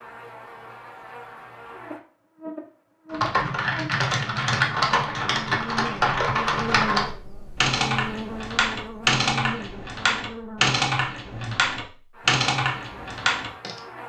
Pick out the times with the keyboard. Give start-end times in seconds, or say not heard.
3.1-13.8.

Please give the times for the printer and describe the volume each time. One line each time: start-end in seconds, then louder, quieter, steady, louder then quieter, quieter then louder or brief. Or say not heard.
not heard.